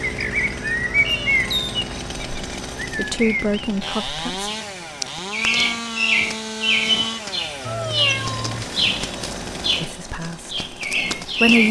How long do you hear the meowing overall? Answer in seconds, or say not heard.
2 s.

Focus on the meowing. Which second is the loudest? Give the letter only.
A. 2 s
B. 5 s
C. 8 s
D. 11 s
C.